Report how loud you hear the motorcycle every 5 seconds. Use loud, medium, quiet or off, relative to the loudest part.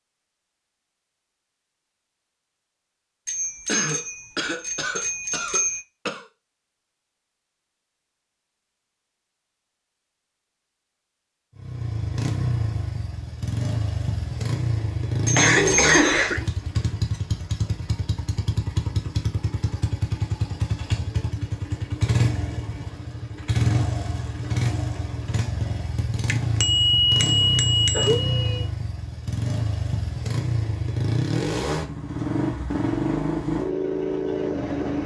off, off, loud, loud, loud, loud, loud.